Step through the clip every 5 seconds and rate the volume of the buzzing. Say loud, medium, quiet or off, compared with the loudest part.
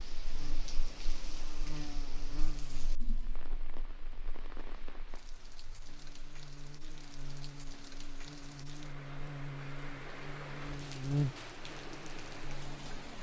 quiet, medium, loud.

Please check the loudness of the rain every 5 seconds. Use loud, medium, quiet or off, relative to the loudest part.
medium, medium, loud.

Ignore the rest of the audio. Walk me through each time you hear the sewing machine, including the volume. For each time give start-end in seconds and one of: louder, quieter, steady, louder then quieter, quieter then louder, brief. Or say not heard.
not heard.